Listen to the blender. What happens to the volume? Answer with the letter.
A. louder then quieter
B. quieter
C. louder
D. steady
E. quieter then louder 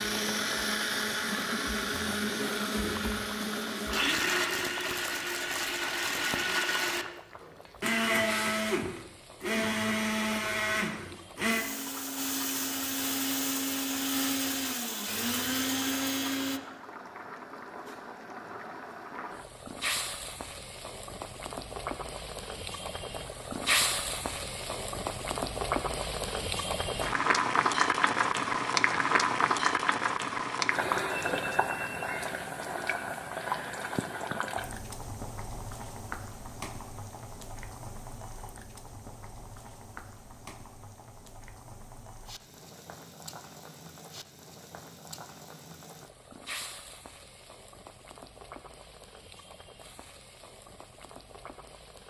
D.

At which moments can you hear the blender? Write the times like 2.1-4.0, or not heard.
0.0-16.6.